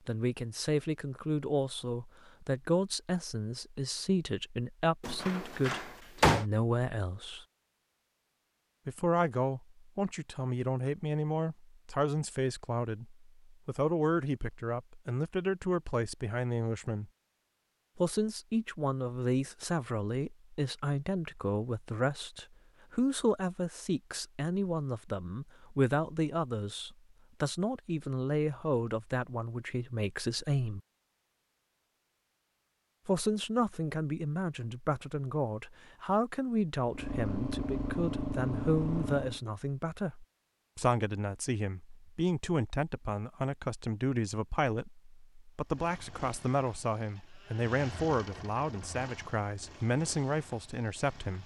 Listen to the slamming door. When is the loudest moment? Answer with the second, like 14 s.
6 s.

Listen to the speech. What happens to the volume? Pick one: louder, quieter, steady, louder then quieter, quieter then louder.
steady.